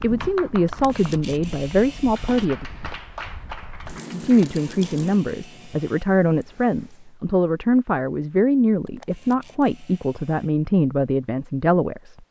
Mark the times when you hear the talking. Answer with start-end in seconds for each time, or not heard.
0.0-2.6, 4.1-12.2.